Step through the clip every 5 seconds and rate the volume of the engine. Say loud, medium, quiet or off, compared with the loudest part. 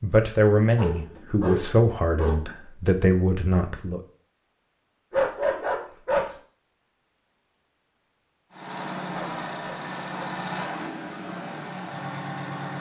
off, loud, loud.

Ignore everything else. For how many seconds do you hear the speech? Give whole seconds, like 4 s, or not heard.
4 s.